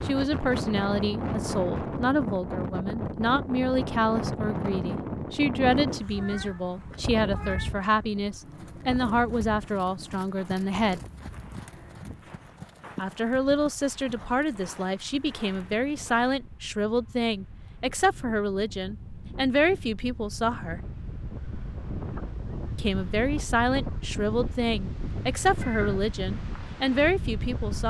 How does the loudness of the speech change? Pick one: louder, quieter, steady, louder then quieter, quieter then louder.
steady.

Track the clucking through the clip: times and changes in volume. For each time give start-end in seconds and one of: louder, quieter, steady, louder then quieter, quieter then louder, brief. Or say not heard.
not heard.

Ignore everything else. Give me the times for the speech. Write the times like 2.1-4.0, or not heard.
0.0-11.0, 12.9-20.8, 22.8-27.8.